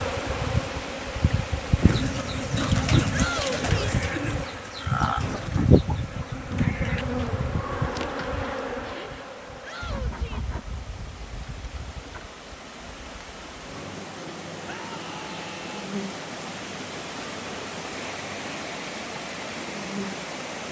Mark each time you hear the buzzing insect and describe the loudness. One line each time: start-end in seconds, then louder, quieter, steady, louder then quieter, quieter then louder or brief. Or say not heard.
0.0-20.6 quieter.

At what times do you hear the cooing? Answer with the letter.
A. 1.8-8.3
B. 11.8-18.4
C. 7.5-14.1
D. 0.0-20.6
A.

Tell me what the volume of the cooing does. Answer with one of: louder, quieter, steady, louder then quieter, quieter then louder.
quieter.